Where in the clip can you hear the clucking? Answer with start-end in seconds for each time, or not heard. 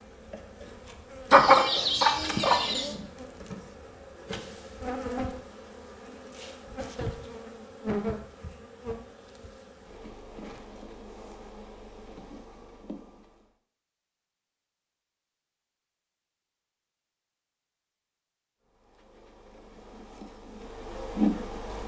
1.3-3.0.